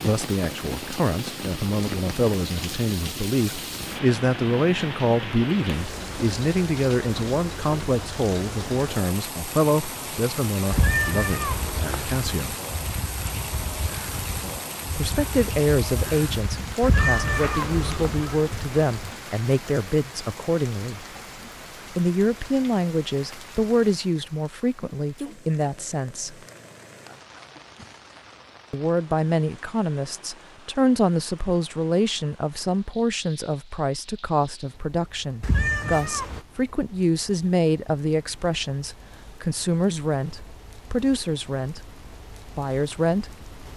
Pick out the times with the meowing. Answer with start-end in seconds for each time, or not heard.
10.7-12.2, 16.8-18.1, 35.4-36.4.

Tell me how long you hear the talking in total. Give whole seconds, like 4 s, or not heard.
38 s.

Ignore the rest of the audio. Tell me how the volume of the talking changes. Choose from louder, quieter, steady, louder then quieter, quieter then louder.
steady.